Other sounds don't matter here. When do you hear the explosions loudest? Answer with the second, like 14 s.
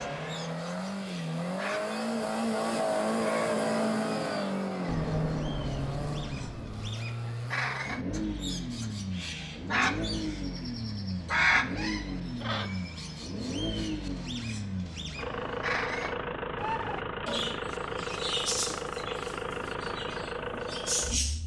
5 s.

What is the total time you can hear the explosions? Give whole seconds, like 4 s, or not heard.
2 s.